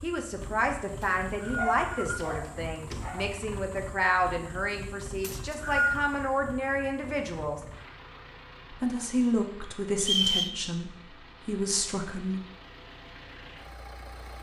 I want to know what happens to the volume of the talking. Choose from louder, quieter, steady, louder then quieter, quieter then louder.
steady.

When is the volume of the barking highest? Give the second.
2 s.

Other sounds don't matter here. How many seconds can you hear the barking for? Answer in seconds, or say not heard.
2 s.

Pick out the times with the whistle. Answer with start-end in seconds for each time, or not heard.
1.0-2.2, 5.2-6.0, 10.0-10.6.